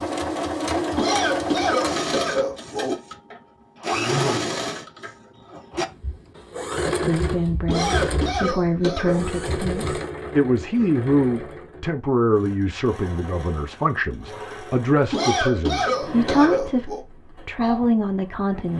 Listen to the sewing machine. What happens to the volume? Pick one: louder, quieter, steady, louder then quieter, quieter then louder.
quieter.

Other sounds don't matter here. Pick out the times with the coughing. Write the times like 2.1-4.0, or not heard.
0.9-3.0, 7.7-9.2, 15.1-17.1.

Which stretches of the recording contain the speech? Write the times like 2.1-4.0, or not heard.
7.0-18.7.